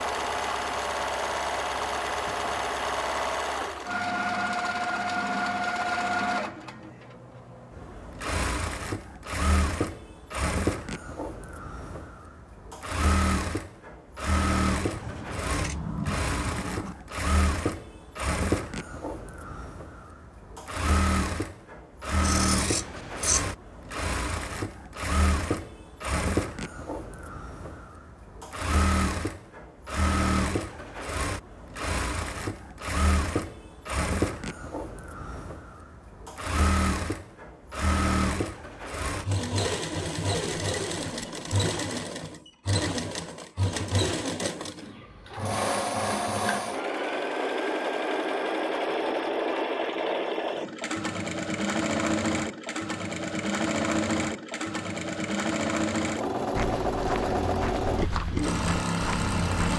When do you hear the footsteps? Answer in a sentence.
The footsteps can be heard from 56.5 to 59.7 s.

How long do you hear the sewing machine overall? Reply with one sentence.
You can hear the sewing machine for 60 seconds altogether.